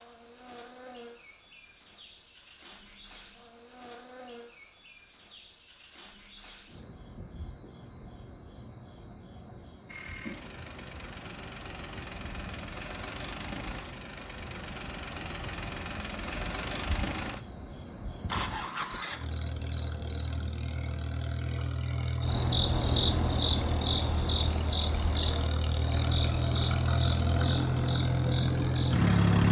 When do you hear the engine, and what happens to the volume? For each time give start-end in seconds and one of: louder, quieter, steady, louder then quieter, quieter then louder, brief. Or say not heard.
9.8-29.4 louder.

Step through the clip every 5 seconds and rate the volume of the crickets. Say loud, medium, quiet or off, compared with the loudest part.
quiet, quiet, quiet, medium, loud, medium.